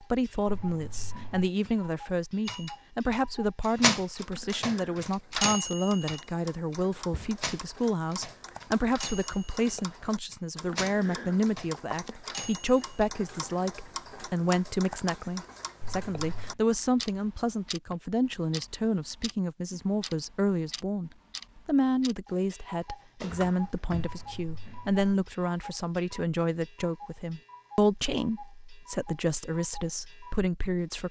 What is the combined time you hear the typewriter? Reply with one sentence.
The typewriter can be heard for 11 seconds in total.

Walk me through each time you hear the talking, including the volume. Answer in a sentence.
You can hear the talking from 0.0 to 31.0 s, at a steady volume.